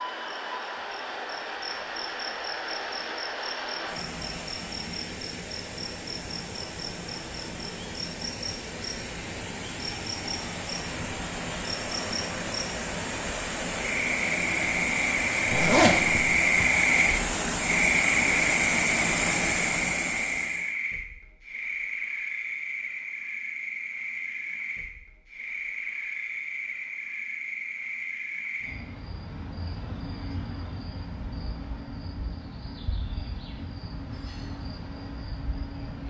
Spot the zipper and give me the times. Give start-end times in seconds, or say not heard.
15.4-16.6.